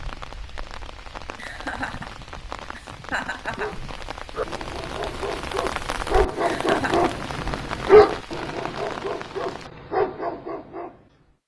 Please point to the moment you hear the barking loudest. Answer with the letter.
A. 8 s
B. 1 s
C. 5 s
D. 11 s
A.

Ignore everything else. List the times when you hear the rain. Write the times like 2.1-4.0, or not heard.
0.0-9.7.